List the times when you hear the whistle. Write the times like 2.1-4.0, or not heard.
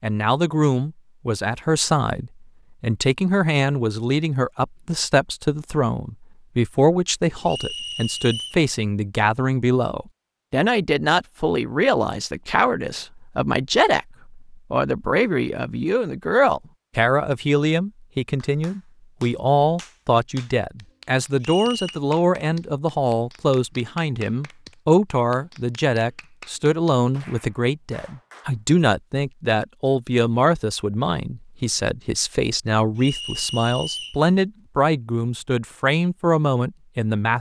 7.5-8.6, 21.4-22.0, 33.0-34.2.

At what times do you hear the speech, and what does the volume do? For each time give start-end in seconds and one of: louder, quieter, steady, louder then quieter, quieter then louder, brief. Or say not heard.
0.0-37.3 steady.